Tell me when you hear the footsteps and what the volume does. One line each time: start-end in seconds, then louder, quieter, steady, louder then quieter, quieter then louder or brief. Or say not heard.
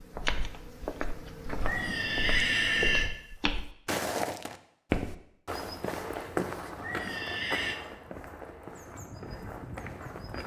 0.0-10.4 louder then quieter.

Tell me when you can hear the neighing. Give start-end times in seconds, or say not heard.
1.6-3.1, 6.8-7.8.